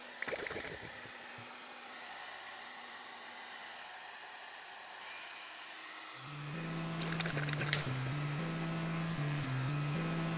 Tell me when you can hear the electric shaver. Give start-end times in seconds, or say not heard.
6.2-10.3.